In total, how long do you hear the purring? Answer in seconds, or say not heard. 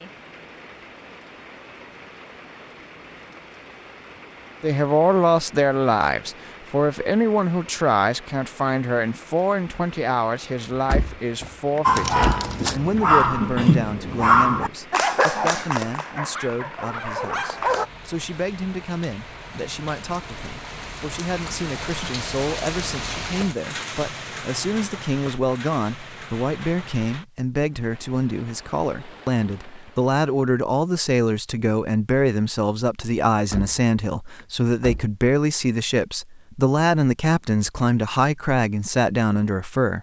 not heard.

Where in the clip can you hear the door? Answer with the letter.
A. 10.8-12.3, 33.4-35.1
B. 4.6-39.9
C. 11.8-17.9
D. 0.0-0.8
A.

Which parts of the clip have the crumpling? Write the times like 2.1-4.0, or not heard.
11.9-12.8.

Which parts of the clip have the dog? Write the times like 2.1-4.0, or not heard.
11.8-17.9.